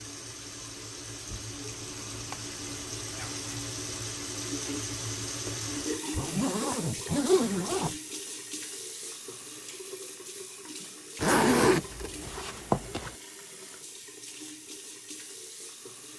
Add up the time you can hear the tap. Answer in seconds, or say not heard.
16 s.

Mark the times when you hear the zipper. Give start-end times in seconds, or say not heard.
1.8-3.5, 6.1-8.0, 11.2-13.2.